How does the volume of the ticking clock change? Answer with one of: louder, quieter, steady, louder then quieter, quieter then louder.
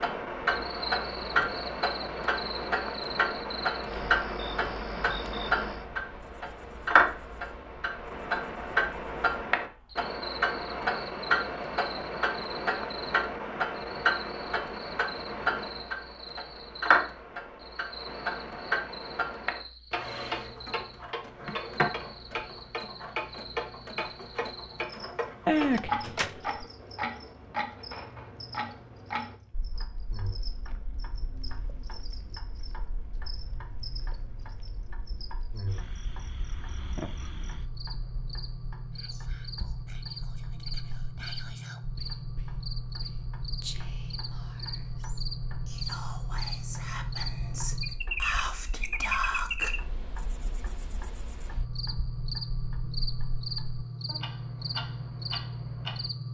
quieter then louder.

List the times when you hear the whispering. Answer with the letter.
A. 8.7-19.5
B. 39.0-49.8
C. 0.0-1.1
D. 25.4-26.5
B.